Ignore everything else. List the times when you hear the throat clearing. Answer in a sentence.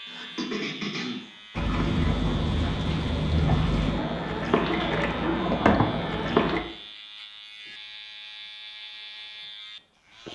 The throat clearing can be heard from 0.1 to 1.2 s.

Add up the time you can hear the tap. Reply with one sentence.
The tap can be heard for 5 seconds in total.